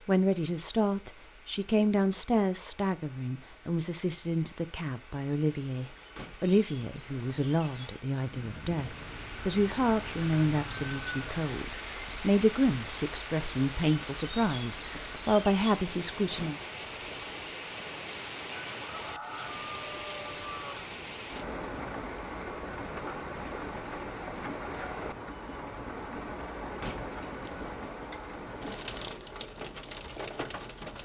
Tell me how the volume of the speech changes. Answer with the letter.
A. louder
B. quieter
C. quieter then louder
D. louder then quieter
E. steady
E.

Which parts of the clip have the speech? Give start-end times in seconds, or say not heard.
0.1-16.6.